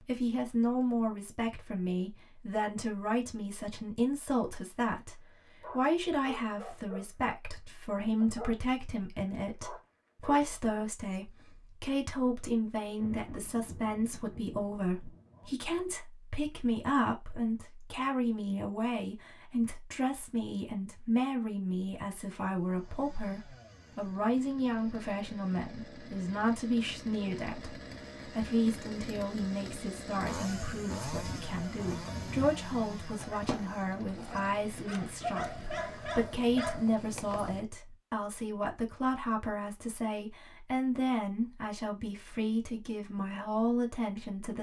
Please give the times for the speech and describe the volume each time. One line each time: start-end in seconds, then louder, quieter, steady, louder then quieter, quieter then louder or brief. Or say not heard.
0.0-44.5 steady.